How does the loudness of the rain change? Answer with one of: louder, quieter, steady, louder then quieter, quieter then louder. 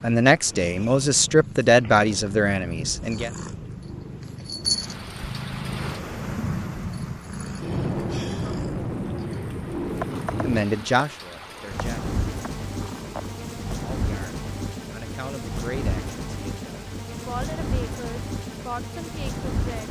louder.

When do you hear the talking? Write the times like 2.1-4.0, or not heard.
0.0-3.3, 10.4-12.1, 13.8-19.8.